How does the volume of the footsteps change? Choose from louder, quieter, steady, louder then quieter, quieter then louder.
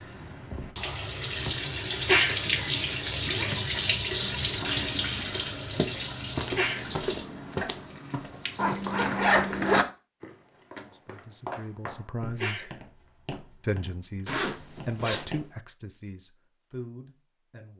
quieter.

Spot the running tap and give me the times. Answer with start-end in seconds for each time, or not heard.
0.0-9.8.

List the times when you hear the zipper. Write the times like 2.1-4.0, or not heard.
2.4-3.8, 8.6-9.8, 14.2-15.4.